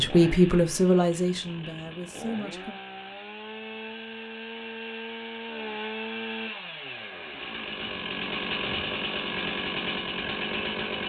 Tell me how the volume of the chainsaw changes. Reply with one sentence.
The loudness of the chainsaw goes up.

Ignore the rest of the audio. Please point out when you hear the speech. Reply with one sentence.
You can hear the speech from 0.0 to 2.8 s.